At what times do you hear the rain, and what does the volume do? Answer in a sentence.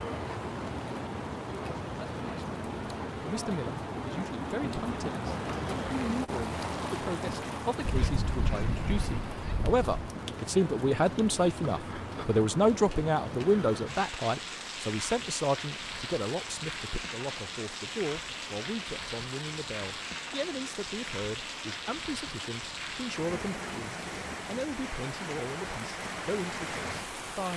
You can hear the rain from 0.0 to 27.5 s, at a steady volume.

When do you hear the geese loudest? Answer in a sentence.
The loudest moment of the geese is at 9 seconds.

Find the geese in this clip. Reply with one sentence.
The geese can be heard from 7.8 to 9.8 s.